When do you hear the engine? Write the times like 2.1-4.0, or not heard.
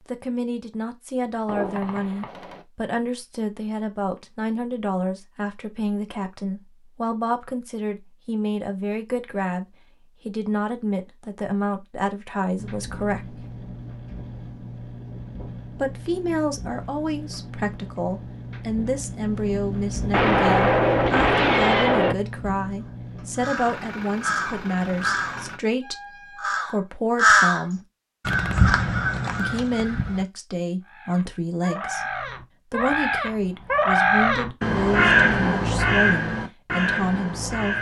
12.6-25.6.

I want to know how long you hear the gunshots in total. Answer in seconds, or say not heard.
5 s.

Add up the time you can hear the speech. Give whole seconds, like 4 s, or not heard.
34 s.